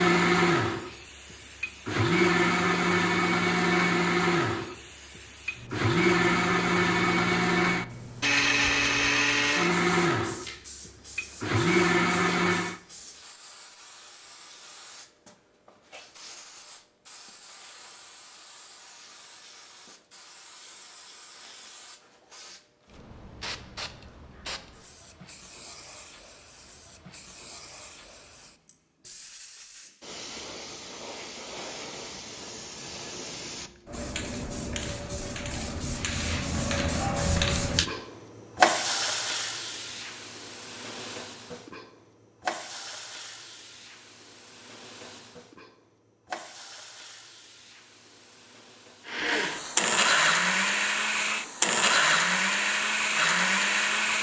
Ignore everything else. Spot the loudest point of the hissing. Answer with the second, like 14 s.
39 s.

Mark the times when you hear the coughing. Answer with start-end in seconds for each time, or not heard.
not heard.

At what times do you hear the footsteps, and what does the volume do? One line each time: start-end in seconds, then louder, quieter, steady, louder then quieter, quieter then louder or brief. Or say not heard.
not heard.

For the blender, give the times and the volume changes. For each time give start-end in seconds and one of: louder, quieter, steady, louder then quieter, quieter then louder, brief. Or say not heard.
0.0-12.8 steady
49.0-54.1 steady.